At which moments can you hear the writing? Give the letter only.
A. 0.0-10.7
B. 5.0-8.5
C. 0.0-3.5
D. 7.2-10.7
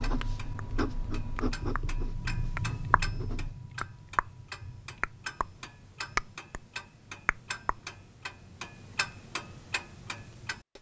C.